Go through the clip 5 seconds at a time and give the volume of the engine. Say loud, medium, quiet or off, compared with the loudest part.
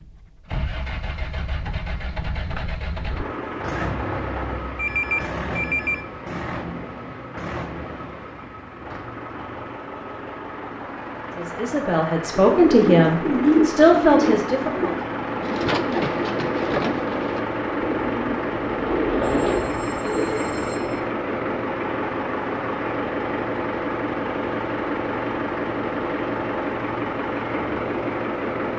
medium, medium, medium, loud, loud, loud.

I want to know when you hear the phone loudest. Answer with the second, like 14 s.
5 s.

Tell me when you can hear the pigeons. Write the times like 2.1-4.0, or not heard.
12.3-20.4.